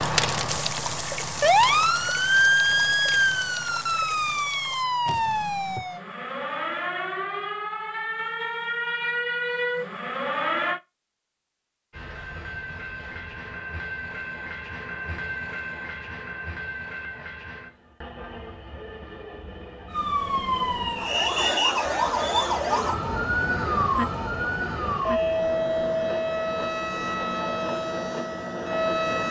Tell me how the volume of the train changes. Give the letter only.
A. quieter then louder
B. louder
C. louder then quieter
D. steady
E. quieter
A.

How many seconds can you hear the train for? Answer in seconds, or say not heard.
17 s.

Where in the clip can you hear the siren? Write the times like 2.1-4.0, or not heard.
0.0-10.8, 19.9-29.2.